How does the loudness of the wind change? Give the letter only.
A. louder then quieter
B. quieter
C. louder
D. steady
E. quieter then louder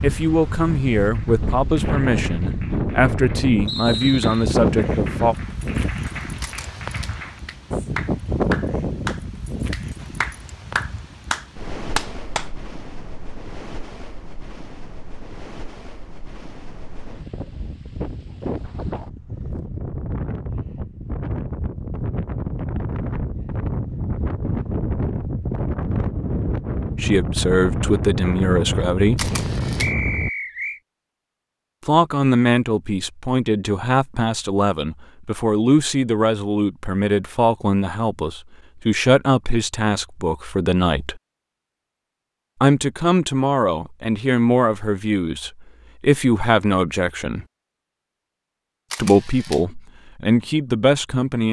E.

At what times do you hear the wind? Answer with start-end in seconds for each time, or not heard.
0.0-30.3.